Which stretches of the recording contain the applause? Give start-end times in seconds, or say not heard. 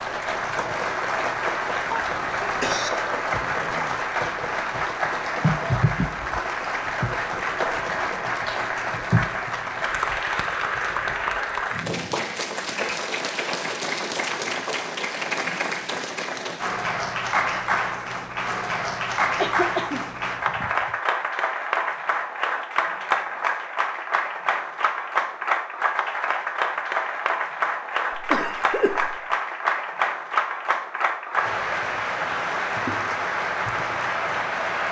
0.0-34.8.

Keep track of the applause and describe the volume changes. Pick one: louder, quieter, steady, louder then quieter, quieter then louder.
steady.